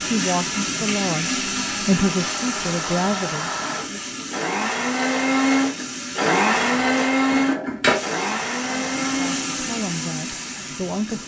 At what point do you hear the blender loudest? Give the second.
7 s.